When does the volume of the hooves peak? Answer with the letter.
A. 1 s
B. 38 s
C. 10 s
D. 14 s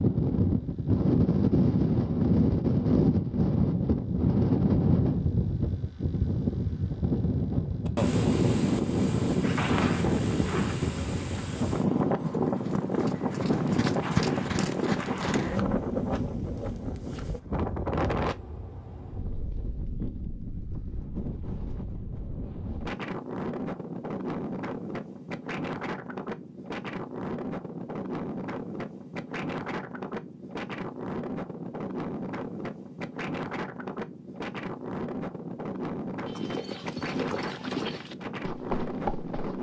D.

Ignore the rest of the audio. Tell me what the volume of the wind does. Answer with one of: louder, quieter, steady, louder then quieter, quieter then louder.
quieter.